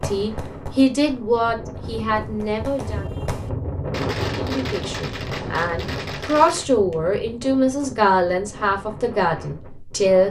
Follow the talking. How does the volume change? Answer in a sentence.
The loudness of the talking goes down, then up.